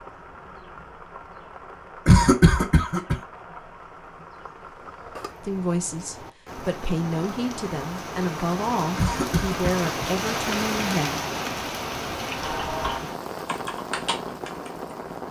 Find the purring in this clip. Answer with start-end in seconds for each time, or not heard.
not heard.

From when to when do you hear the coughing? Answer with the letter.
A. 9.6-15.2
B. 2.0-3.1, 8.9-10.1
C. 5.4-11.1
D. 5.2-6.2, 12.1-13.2
B.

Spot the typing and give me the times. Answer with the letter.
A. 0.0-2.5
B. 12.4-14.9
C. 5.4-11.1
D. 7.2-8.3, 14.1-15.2
B.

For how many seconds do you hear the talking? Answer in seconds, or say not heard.
6 s.